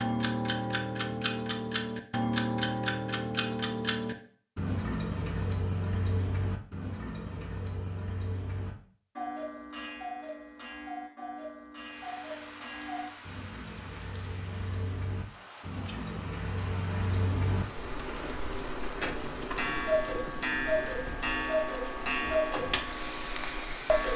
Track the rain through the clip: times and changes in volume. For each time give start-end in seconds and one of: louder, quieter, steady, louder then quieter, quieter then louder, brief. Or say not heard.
11.8-24.1 louder.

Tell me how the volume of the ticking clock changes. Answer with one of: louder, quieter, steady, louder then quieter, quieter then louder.
quieter then louder.